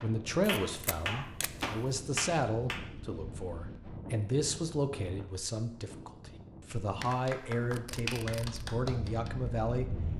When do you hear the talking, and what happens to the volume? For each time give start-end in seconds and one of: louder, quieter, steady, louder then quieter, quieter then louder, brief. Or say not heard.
0.0-9.9 steady.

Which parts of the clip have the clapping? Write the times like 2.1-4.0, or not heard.
0.0-2.9, 7.0-9.7.